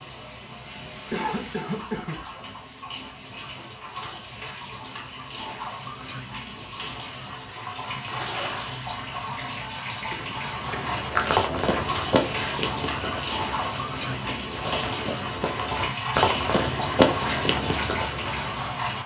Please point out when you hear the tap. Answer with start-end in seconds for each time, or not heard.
0.0-19.0.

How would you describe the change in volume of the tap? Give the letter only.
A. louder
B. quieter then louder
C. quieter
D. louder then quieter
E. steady
A.